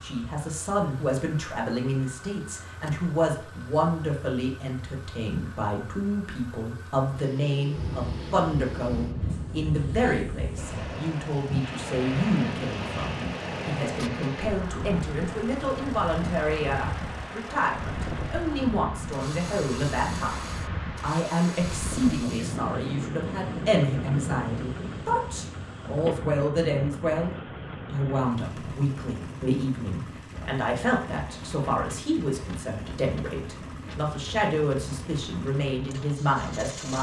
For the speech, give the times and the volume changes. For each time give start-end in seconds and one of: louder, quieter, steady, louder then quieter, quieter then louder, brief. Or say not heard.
0.0-36.9 steady.